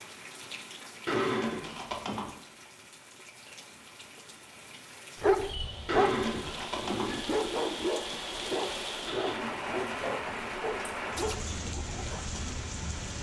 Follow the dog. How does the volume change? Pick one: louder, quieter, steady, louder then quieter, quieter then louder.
quieter.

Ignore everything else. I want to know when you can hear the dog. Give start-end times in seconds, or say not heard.
5.2-12.2.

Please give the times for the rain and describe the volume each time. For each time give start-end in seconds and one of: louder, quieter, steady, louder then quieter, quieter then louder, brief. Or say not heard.
0.0-13.1 louder.